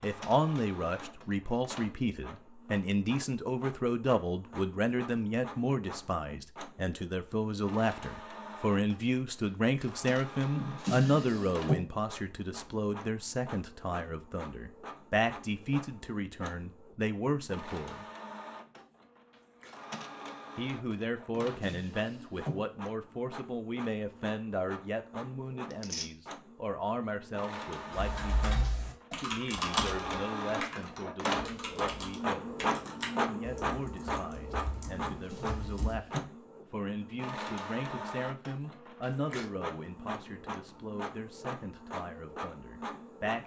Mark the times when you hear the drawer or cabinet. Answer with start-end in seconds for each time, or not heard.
10.5-11.8, 21.4-22.6, 35.1-36.3.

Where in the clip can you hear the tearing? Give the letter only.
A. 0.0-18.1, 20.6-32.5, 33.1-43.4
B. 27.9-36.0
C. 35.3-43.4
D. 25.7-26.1
D.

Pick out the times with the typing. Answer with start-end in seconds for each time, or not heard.
27.9-36.0.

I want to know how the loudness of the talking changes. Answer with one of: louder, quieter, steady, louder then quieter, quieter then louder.
quieter.